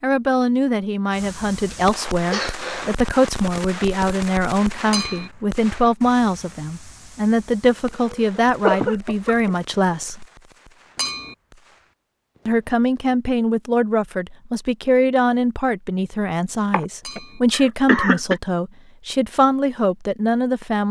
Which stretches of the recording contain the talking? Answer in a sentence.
The talking can be heard from 0.0 to 10.2 s and from 12.4 to 20.8 s.